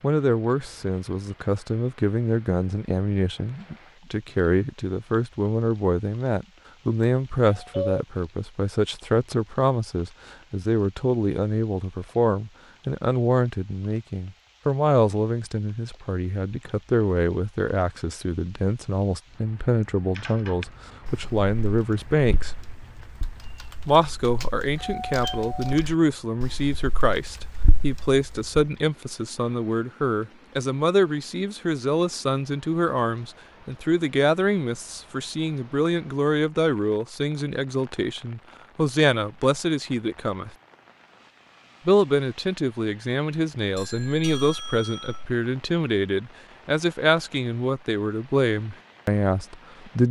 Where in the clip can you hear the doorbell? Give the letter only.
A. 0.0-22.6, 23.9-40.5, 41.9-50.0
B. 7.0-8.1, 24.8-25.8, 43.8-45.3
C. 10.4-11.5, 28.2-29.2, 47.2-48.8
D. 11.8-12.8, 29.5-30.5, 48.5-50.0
B.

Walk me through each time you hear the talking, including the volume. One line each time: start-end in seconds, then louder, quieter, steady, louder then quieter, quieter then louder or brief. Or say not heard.
0.0-22.6 steady
23.9-40.5 steady
41.9-50.0 steady.